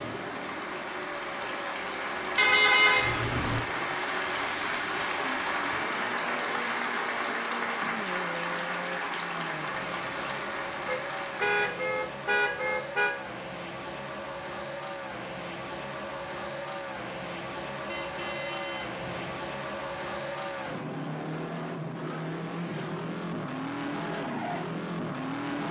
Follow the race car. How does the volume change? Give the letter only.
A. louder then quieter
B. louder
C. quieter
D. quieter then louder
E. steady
B.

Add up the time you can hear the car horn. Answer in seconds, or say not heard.
5 s.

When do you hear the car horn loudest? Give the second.
3 s.